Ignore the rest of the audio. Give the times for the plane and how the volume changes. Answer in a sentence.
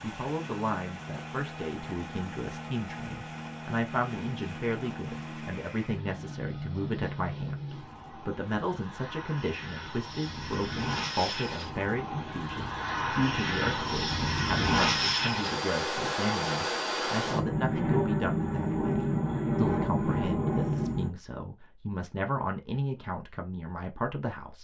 You can hear the plane from 0.0 to 21.1 s, getting louder.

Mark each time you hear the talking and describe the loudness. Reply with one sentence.
The talking can be heard from 0.0 to 24.5 s, at a steady volume.